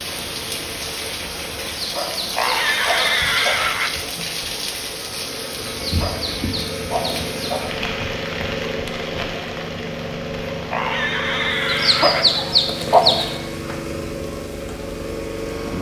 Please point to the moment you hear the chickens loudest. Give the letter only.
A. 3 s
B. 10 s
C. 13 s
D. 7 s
C.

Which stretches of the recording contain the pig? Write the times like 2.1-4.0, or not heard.
2.4-4.0, 10.7-12.3.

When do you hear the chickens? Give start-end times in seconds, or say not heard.
1.8-3.6, 5.8-7.7, 11.7-13.3.